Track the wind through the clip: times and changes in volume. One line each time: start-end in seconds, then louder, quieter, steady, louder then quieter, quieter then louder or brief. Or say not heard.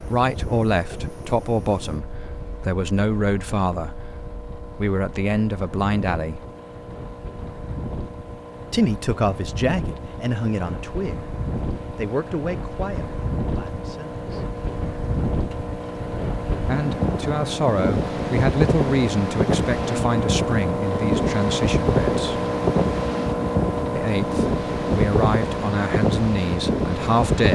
0.0-27.4 louder.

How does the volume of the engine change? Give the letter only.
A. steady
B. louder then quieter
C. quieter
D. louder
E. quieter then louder
D.